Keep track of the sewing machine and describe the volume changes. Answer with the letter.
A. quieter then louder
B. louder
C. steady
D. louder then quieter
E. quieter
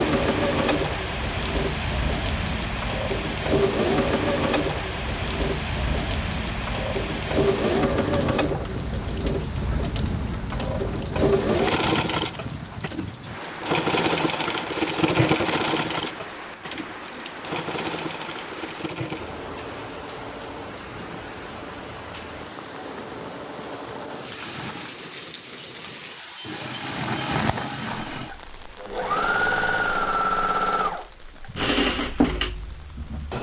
A.